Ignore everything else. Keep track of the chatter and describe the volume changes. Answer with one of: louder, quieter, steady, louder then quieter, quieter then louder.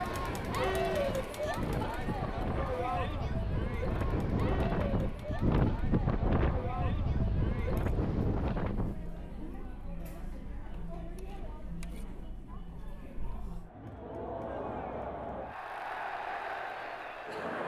quieter then louder.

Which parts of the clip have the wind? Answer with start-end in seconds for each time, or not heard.
0.0-9.1.